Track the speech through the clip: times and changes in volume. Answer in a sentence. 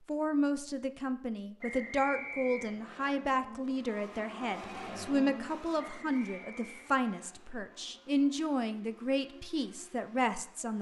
The speech can be heard from 0.1 to 10.7 s, at a steady volume.